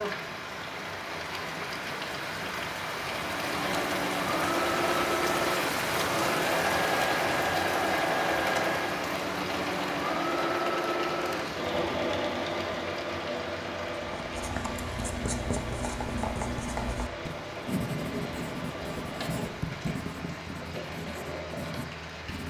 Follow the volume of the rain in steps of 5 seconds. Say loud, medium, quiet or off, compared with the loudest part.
loud, loud, medium, medium, medium.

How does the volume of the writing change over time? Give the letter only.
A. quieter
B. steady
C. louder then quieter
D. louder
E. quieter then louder
A.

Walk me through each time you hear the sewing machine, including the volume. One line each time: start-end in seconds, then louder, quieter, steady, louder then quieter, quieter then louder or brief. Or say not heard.
3.1-22.2 quieter.